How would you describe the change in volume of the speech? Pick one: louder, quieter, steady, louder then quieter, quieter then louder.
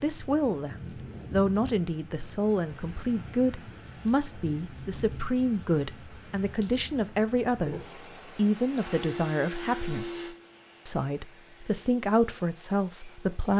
steady.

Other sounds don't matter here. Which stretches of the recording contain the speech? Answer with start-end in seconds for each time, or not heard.
0.0-13.5.